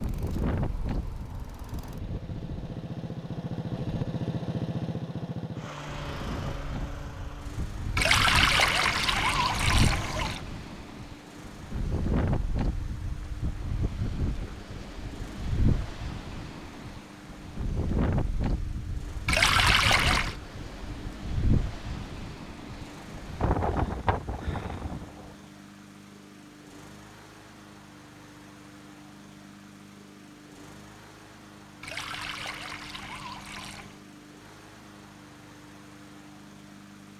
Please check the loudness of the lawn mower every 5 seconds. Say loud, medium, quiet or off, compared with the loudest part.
loud, loud, quiet, quiet, quiet, quiet, quiet, quiet.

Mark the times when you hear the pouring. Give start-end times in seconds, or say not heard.
8.0-10.4, 19.2-20.4, 31.8-34.0.